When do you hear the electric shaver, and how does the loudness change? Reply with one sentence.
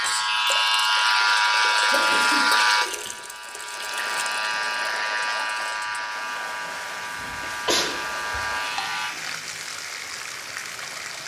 The electric shaver can be heard from 0.0 to 9.2 s, getting quieter.